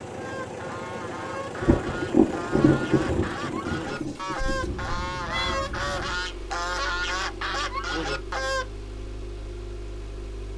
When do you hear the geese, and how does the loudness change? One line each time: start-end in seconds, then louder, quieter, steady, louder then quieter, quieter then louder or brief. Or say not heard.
0.1-8.7 louder.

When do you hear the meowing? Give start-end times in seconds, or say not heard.
4.7-6.2.